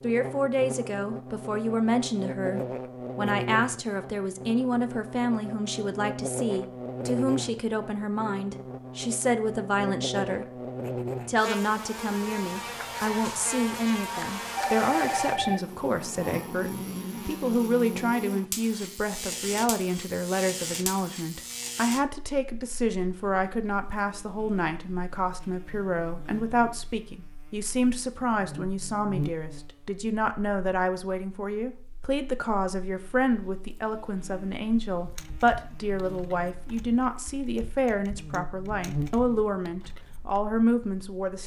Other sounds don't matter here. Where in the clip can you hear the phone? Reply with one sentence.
You can hear the phone from 14.6 to 15.6 s.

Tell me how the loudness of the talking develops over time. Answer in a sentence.
The volume of the talking stays about the same.